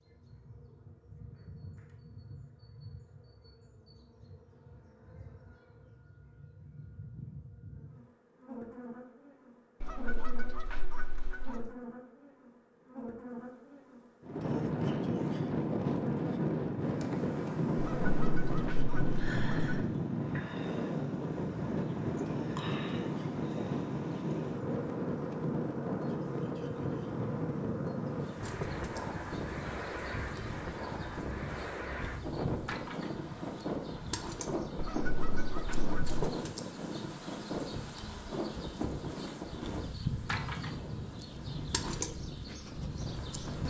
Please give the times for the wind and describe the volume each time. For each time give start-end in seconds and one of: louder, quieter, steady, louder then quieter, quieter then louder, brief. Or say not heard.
14.2-43.6 quieter.